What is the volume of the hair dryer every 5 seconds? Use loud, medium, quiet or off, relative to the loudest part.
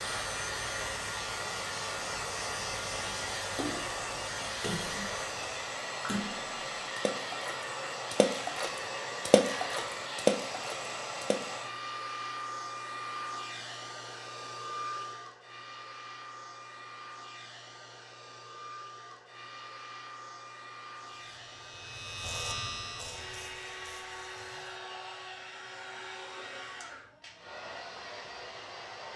loud, loud, loud, medium, medium, medium.